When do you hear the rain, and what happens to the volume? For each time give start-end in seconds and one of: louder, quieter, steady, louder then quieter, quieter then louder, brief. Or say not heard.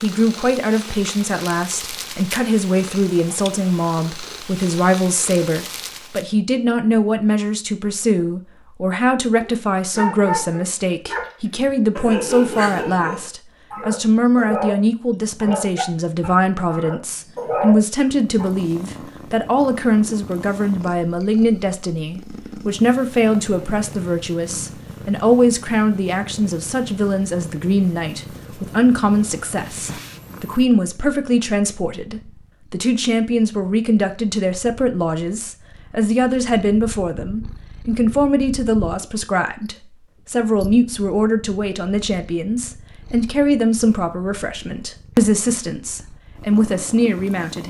not heard.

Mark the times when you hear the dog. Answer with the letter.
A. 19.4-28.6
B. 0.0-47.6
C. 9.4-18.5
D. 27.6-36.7
C.